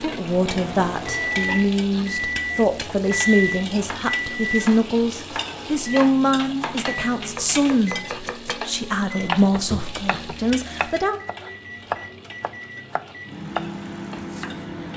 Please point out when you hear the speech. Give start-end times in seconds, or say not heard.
0.0-11.2.